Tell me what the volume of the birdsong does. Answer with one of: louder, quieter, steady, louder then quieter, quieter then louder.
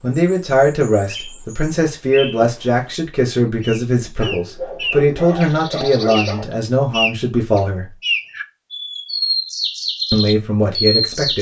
louder.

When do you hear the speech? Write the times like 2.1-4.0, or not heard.
0.0-7.9, 10.1-11.3.